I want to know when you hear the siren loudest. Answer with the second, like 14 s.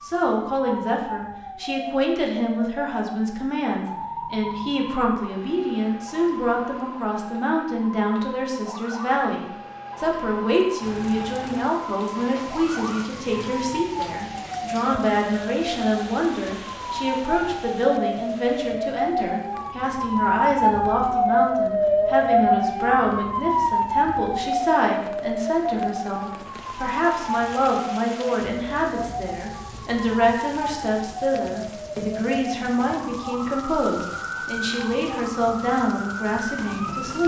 22 s.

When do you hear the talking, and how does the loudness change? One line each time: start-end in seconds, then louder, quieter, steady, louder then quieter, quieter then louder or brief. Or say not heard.
0.0-37.2 steady.